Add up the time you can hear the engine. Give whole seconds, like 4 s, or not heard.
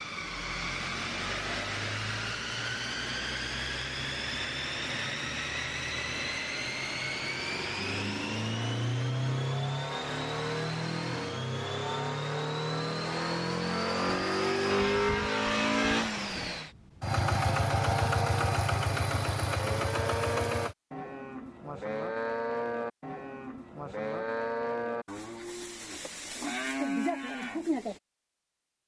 21 s.